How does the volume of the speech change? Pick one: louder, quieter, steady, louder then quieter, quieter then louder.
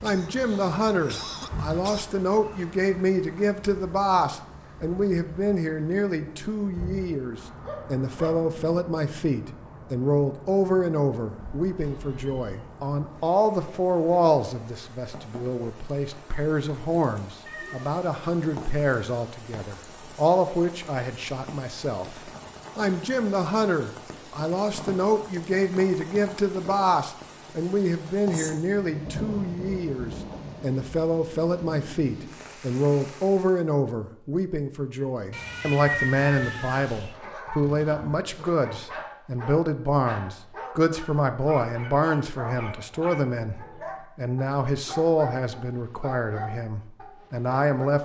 steady.